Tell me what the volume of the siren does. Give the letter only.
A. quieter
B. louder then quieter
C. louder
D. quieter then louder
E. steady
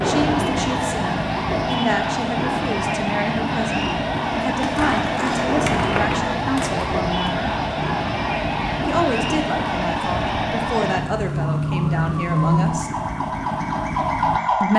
E.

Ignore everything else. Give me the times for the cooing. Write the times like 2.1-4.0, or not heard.
not heard.